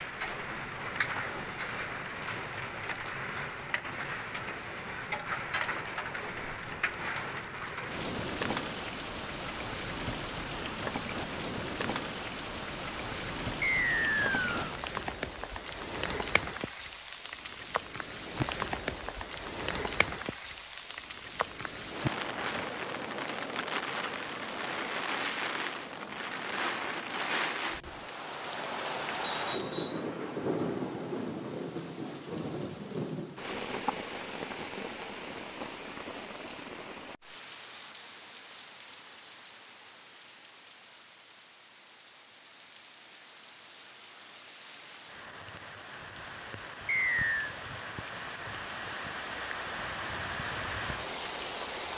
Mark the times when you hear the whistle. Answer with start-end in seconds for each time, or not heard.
13.6-14.6, 29.2-30.1, 46.9-47.5.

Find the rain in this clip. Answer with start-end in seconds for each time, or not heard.
0.0-51.9.